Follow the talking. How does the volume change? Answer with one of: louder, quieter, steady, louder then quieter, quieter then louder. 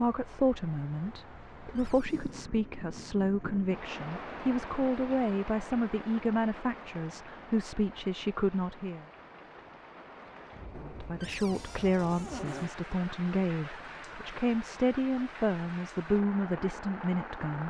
steady.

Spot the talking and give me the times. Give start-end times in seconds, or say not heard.
0.0-9.1, 10.8-17.6.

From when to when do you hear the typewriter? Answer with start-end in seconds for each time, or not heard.
not heard.